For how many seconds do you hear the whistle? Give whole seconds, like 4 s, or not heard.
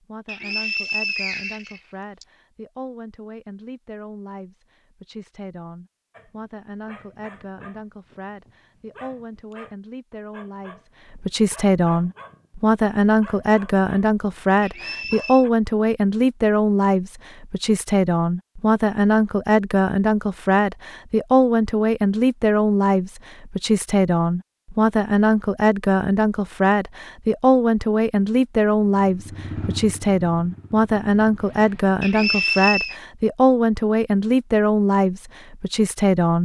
4 s.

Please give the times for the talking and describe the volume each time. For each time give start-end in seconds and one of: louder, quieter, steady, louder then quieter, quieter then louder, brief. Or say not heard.
0.0-36.4 louder.